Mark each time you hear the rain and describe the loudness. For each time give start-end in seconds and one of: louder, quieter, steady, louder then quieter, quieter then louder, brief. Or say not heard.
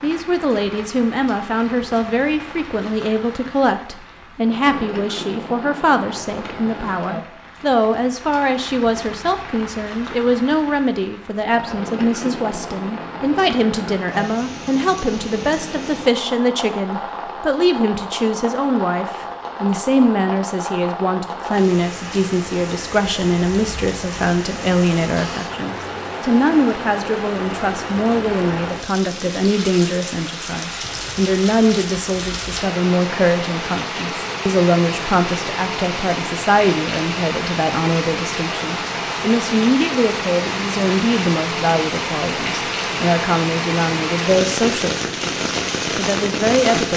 0.0-46.9 louder.